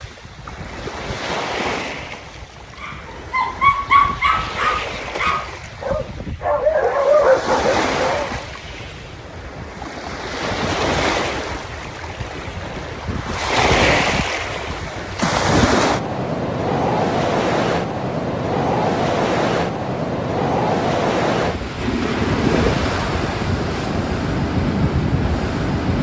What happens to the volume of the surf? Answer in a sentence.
The loudness of the surf goes up.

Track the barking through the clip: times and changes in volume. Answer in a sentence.
You can hear the barking from 2.8 to 8.4 s, getting quieter then louder.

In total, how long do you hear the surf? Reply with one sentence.
You can hear the surf for 26 seconds altogether.